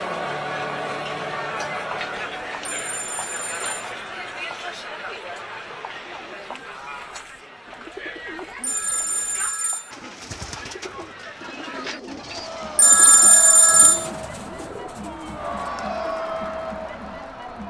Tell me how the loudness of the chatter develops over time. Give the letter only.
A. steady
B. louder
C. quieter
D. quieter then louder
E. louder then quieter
D.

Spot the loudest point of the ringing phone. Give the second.
13 s.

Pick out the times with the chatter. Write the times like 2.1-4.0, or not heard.
0.0-17.6.